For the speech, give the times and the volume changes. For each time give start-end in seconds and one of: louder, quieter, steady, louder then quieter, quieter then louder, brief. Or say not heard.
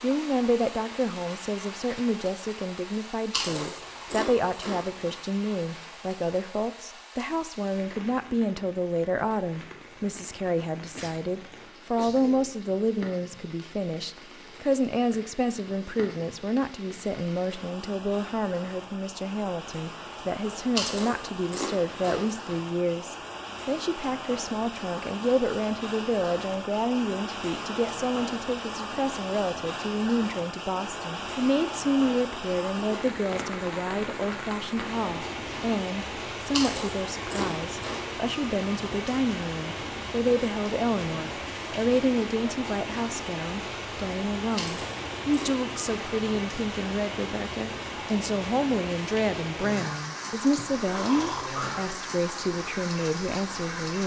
0.0-54.0 steady.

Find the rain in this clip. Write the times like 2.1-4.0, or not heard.
0.0-54.0.